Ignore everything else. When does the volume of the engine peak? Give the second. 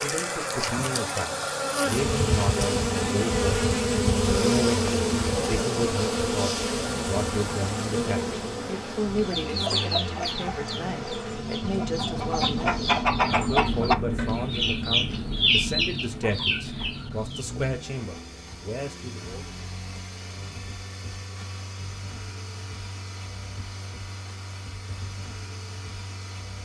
14 s.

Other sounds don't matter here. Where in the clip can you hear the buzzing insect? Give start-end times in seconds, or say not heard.
0.0-13.1.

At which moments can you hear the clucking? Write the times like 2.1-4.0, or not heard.
9.2-17.4.